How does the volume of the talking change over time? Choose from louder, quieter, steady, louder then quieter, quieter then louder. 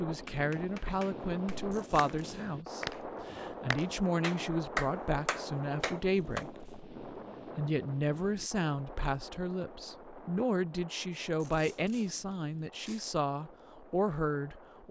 steady.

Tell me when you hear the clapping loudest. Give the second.
5 s.